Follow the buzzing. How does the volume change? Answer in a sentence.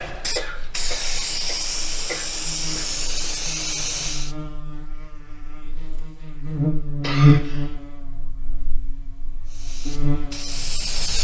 The loudness of the buzzing goes up, then down.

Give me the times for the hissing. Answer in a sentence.
The hissing can be heard from 0.0 to 4.3 s and from 9.4 to 11.1 s.